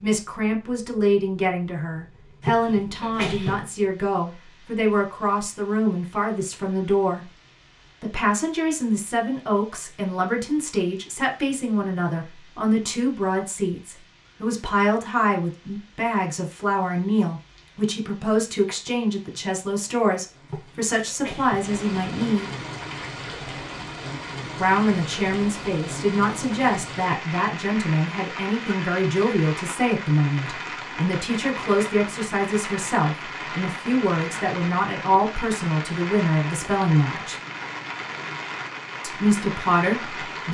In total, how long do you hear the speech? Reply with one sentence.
The speech can be heard for 36 seconds in total.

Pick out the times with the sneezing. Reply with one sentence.
You can hear the sneezing from 2.4 to 3.6 s and from 20.4 to 21.7 s.